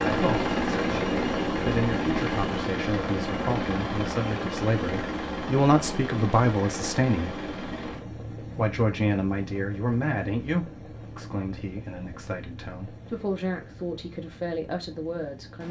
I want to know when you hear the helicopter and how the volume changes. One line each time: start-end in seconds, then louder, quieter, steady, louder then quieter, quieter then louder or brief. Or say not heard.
0.0-15.6 quieter.